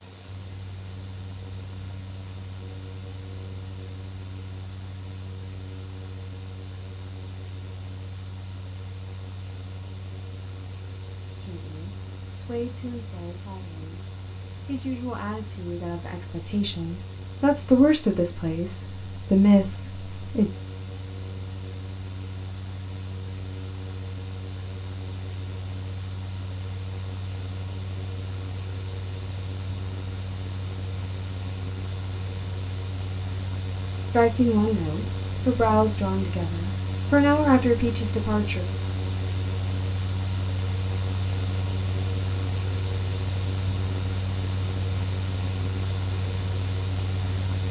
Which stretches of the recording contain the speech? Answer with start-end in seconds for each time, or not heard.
11.4-20.5, 34.1-38.6.